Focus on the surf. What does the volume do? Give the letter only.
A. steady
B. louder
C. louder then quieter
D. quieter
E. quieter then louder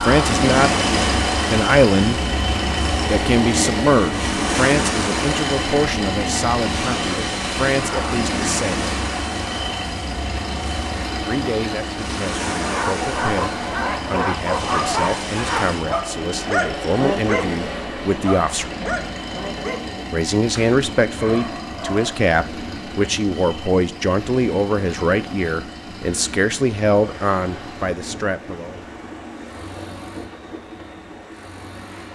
D.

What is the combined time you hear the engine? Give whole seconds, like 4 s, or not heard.
32 s.